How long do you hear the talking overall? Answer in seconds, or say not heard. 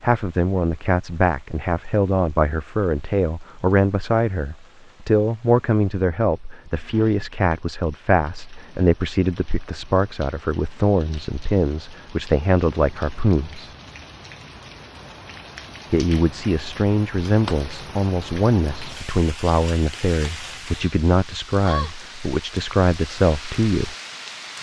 22 s.